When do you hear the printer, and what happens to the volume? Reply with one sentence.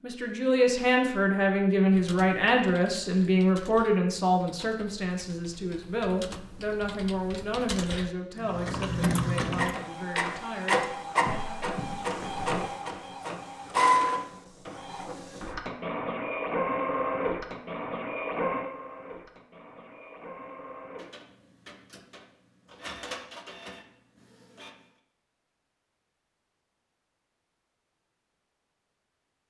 The printer can be heard from 8.3 to 24.9 s, getting quieter.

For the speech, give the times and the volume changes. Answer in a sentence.
The speech can be heard from 0.0 to 11.7 s, getting quieter.